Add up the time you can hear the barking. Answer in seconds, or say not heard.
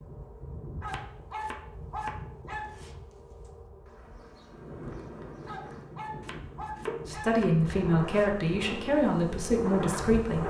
4 s.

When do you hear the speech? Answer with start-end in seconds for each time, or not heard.
7.0-10.4.